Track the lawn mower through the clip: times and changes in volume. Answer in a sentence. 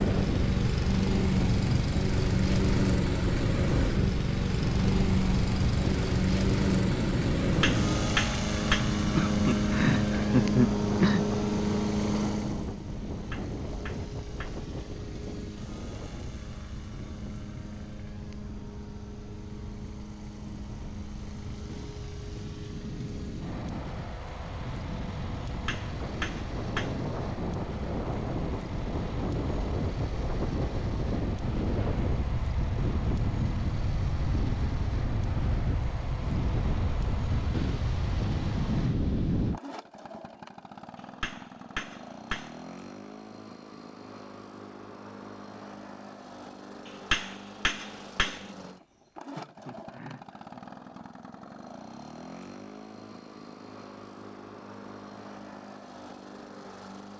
The lawn mower can be heard from 0.0 to 57.1 s, getting quieter.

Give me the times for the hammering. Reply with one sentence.
You can hear the hammering from 7.4 to 8.8 s, from 13.3 to 14.7 s, from 25.4 to 26.9 s, from 41.0 to 42.6 s and from 46.9 to 48.5 s.